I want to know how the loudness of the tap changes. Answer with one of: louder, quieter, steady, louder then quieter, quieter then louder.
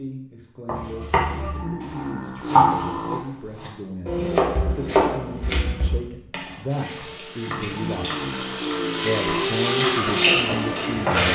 louder.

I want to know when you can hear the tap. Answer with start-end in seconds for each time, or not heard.
6.7-11.3.